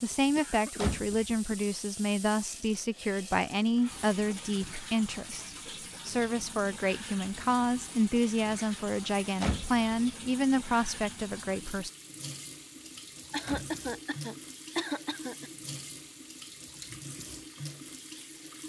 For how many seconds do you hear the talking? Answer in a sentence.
The talking can be heard for 12 seconds in total.